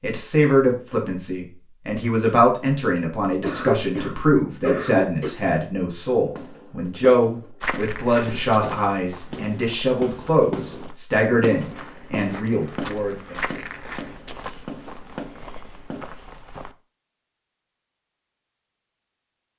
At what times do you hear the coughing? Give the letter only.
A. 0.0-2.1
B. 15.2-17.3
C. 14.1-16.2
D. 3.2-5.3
D.